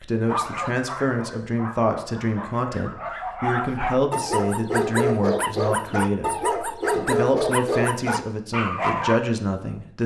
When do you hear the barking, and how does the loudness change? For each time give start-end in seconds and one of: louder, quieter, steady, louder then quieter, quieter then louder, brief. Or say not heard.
0.2-9.2 louder.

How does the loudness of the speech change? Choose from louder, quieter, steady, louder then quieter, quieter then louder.
steady.